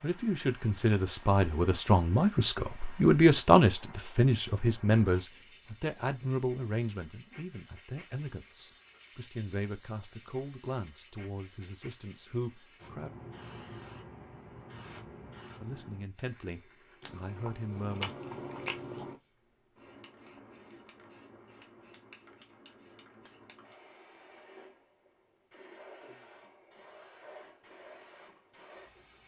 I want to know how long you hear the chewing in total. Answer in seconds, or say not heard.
2 s.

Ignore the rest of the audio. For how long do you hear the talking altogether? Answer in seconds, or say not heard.
16 s.